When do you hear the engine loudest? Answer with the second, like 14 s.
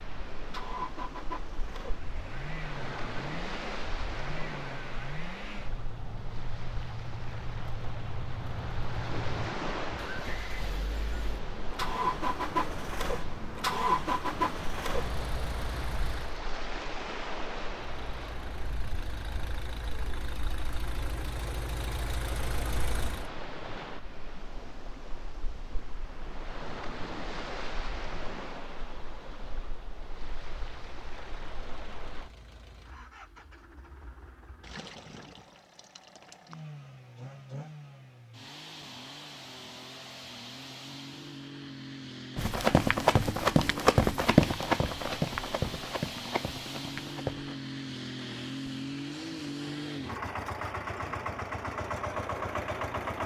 14 s.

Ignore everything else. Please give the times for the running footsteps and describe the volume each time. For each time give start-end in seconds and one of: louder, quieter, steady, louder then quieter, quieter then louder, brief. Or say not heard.
42.4-47.5 quieter.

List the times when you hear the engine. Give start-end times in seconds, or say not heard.
0.0-16.4, 17.7-23.3, 30.1-53.2.